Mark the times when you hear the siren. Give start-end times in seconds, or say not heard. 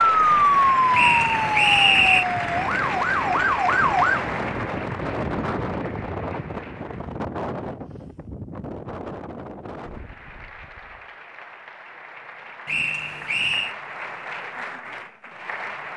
0.0-4.2.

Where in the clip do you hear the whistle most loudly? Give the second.
2 s.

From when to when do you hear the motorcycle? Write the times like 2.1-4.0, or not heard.
not heard.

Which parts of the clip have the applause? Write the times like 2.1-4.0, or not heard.
0.0-7.2, 9.8-15.9.